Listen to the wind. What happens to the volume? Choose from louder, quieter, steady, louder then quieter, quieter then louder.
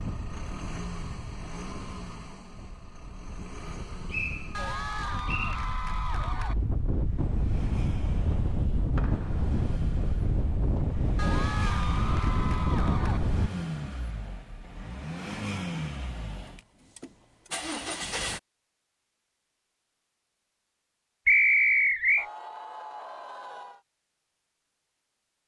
louder.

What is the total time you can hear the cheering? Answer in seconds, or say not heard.
6 s.